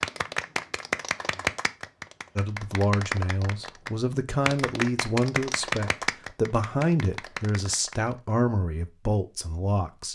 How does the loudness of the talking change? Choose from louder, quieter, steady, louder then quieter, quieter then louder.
steady.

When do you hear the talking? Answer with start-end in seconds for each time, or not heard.
2.4-10.1.